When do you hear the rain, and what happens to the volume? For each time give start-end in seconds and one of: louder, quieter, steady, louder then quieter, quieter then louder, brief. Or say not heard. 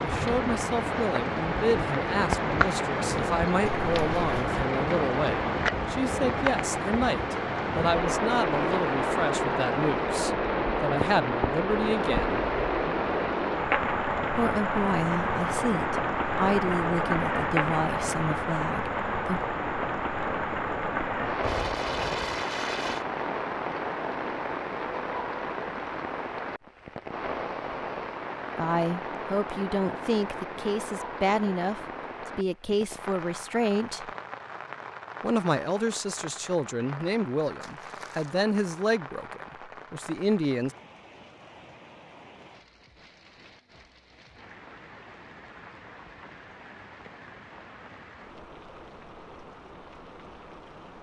0.0-50.9 quieter.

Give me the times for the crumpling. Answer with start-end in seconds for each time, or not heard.
3.7-4.5, 21.4-23.1, 37.6-38.4.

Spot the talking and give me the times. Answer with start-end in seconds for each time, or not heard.
0.0-12.4, 14.3-19.4, 28.6-34.1, 35.2-40.8.